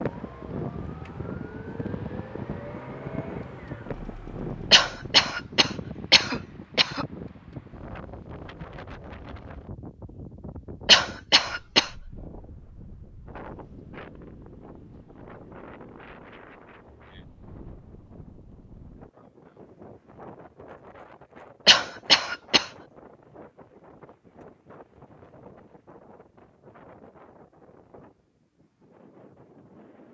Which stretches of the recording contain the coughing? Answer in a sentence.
The coughing can be heard from 4.7 to 7.0 s, from 10.8 to 11.9 s and from 21.6 to 22.7 s.